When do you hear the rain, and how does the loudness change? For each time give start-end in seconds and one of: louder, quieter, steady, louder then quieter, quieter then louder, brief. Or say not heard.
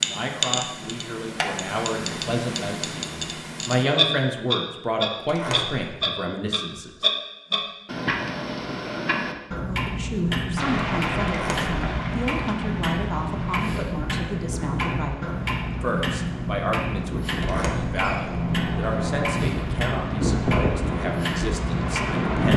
10.6-22.5 quieter then louder.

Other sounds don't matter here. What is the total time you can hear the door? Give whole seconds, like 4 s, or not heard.
3 s.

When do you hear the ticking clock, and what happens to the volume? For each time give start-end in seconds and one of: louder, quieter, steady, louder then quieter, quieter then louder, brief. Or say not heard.
0.0-22.5 steady.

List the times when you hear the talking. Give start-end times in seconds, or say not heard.
0.0-7.0, 9.7-22.5.